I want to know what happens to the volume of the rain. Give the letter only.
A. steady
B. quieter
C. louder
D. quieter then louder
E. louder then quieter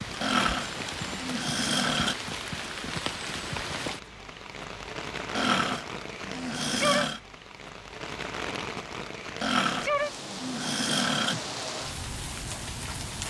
A.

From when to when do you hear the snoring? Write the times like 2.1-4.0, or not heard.
0.2-2.1, 5.3-7.2, 9.4-11.3.